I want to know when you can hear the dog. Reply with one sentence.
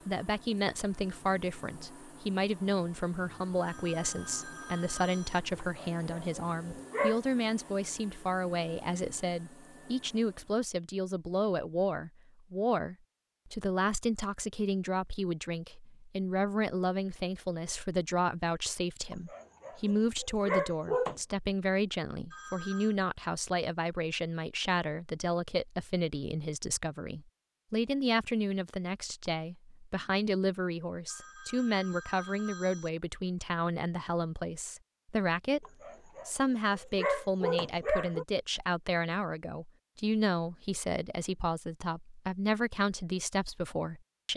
You can hear the dog from 5.5 to 7.2 s, from 19.1 to 21.2 s and from 35.6 to 38.2 s.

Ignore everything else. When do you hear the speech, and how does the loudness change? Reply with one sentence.
The speech can be heard from 0.1 to 44.3 s, at a steady volume.